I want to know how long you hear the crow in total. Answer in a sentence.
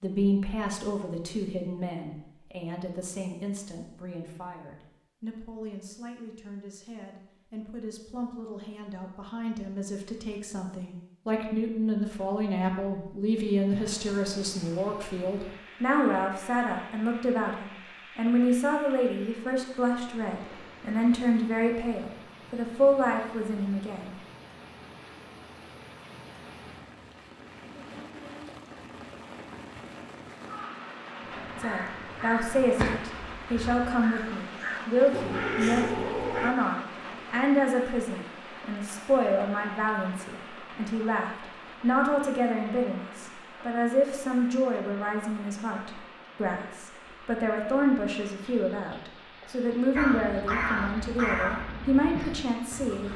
The crow can be heard for 9 seconds in total.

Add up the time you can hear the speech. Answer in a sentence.
You can hear the speech for 46 seconds altogether.